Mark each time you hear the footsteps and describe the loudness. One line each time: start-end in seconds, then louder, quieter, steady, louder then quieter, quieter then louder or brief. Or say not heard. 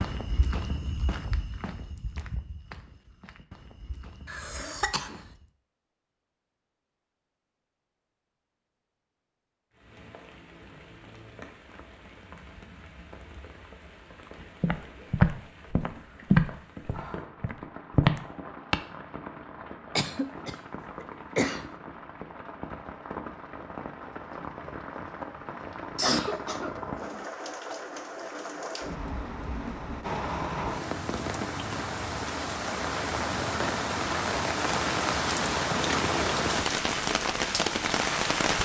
0.0-5.5 quieter
14.6-18.8 quieter then louder.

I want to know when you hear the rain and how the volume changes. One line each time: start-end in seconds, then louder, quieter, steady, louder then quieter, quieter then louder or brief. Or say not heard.
9.7-38.6 louder.